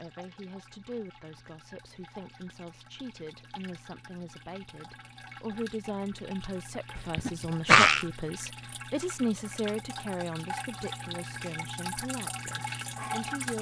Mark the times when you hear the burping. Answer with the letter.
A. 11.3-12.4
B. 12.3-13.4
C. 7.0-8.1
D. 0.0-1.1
C.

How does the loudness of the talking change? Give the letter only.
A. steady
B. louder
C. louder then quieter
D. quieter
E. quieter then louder
C.